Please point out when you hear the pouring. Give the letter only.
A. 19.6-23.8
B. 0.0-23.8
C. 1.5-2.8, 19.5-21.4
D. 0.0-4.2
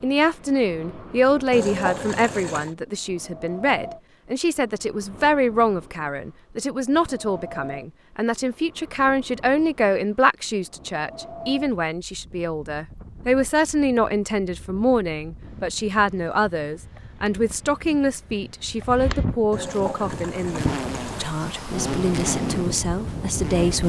C.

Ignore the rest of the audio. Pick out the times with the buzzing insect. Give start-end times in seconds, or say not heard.
19.6-23.8.